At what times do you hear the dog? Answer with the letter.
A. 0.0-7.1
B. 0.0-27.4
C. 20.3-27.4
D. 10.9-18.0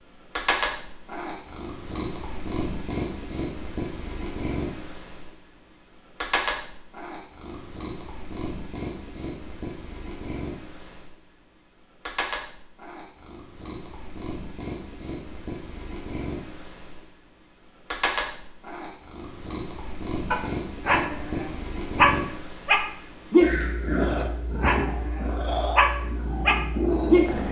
C.